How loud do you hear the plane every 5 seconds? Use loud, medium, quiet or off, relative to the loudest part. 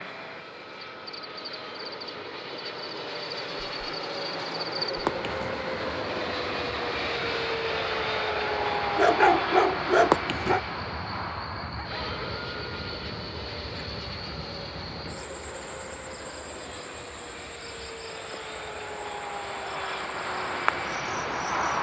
medium, loud, medium, medium, loud.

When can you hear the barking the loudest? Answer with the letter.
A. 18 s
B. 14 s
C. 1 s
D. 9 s
D.